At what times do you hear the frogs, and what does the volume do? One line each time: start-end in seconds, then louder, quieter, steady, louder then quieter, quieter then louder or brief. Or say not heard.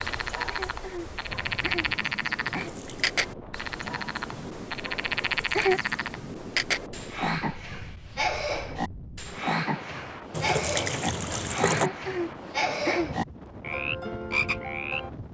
0.0-15.1 steady.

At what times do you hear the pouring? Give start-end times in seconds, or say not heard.
2.5-3.1, 5.2-6.0, 10.3-11.9.